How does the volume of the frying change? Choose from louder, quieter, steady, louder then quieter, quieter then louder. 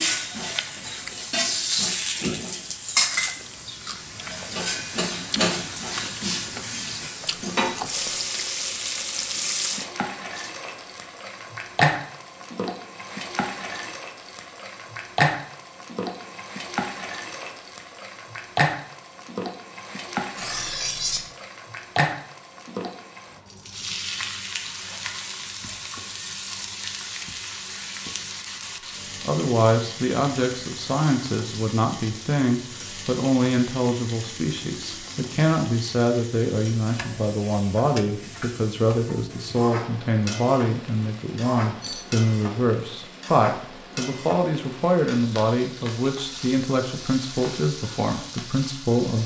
quieter.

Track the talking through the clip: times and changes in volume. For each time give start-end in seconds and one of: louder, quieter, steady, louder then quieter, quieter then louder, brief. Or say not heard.
29.2-49.2 steady.